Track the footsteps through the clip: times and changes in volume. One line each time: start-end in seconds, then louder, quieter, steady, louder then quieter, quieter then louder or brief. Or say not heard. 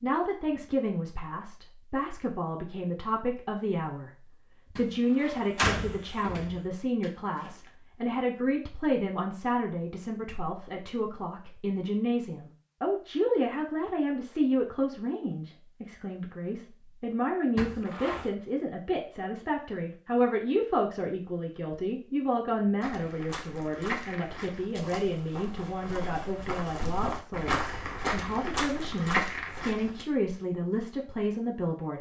22.8-30.1 quieter then louder.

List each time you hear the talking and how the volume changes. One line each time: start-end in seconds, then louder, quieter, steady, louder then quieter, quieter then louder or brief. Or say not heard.
0.0-31.9 steady.